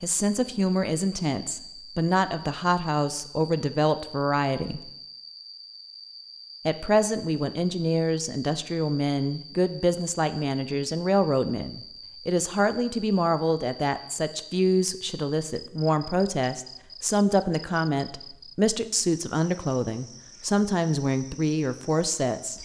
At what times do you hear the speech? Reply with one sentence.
The speech can be heard from 0.0 to 4.9 s and from 6.7 to 22.6 s.